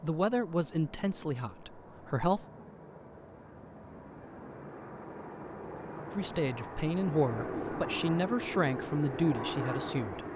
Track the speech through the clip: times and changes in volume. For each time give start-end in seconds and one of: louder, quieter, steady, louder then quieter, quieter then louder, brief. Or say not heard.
0.0-2.5 brief
6.2-10.2 steady.